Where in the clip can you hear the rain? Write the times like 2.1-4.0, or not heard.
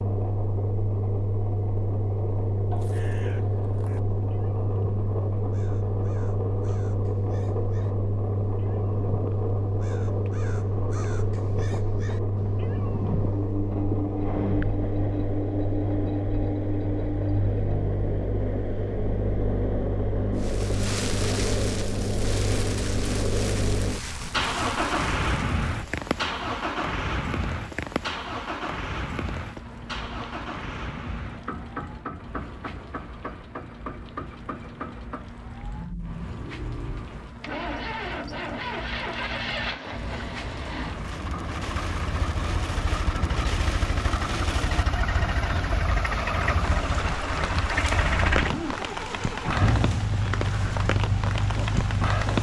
20.4-52.3.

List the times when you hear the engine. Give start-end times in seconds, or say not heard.
0.0-52.3.